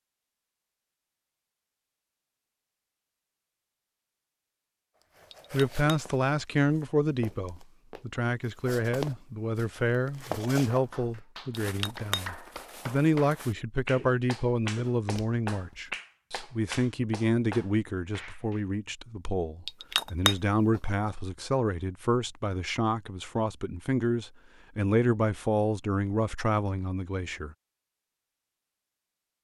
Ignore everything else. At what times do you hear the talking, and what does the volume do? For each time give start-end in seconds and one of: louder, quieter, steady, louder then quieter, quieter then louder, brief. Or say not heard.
5.5-27.6 steady.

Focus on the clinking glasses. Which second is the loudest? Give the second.
20 s.